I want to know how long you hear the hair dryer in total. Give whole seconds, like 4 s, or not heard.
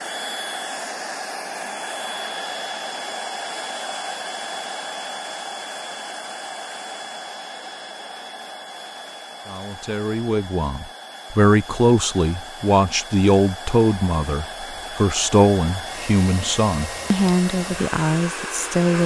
19 s.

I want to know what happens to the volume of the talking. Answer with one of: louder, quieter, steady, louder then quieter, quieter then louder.
steady.